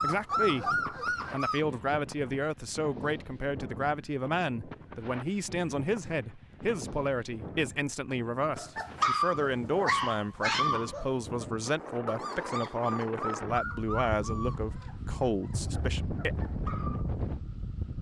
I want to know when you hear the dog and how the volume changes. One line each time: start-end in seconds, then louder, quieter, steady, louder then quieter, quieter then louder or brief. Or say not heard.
0.0-1.6 brief
8.6-17.1 quieter.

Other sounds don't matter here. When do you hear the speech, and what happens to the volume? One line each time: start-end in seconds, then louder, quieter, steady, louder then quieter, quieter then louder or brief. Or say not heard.
0.0-16.4 steady.